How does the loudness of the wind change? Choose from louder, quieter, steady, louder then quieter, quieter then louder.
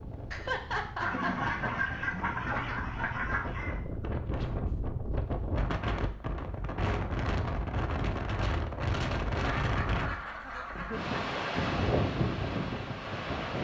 louder.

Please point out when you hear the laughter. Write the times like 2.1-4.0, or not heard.
0.3-1.7, 10.8-11.3.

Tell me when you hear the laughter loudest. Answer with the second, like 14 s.
1 s.